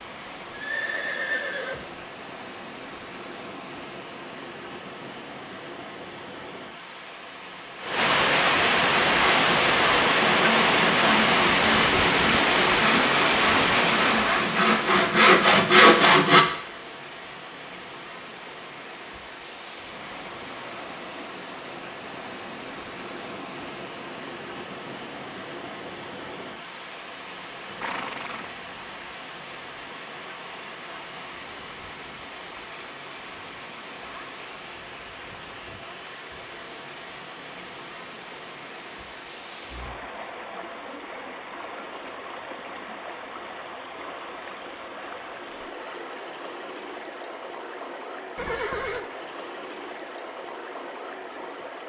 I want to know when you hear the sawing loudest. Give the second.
16 s.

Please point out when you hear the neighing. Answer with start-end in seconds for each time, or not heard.
0.5-2.0, 27.6-28.7, 48.4-49.0.